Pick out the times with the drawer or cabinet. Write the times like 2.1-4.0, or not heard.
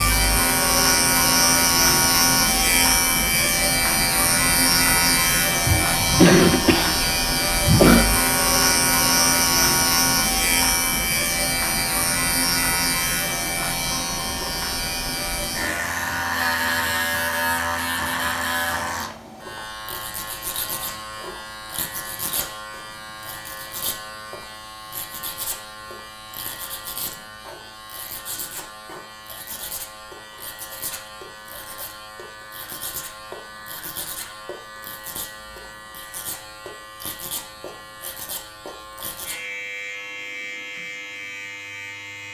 not heard.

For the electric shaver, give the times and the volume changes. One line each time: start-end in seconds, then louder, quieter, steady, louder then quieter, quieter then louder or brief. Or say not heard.
0.0-42.2 quieter.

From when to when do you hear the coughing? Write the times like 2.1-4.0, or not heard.
5.7-8.1.